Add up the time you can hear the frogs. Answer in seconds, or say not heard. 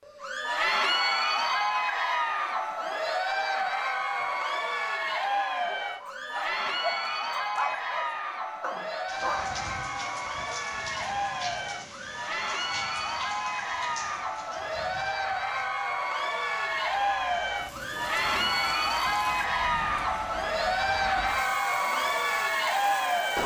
not heard.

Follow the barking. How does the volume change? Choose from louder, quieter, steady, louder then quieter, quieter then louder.
louder then quieter.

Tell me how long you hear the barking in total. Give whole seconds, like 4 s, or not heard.
5 s.